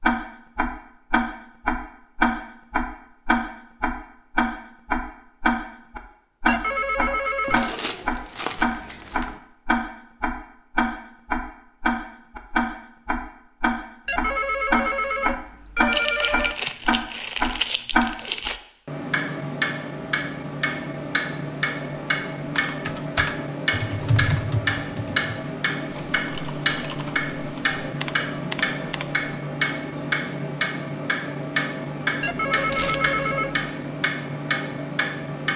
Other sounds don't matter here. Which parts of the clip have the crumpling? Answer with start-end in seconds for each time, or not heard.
7.5-9.4, 15.9-18.6, 32.7-33.2.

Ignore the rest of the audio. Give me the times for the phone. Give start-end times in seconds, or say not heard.
6.5-7.7, 14.1-16.6, 32.2-33.7.